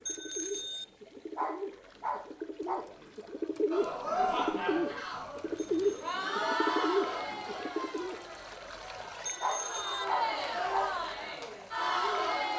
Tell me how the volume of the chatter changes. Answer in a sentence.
The loudness of the chatter goes down, then up.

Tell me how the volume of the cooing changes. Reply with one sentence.
The volume of the cooing goes up.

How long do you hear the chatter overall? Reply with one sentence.
You can hear the chatter for 9 seconds altogether.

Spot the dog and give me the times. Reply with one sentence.
The dog can be heard from 1.4 to 2.9 s and from 9.4 to 10.9 s.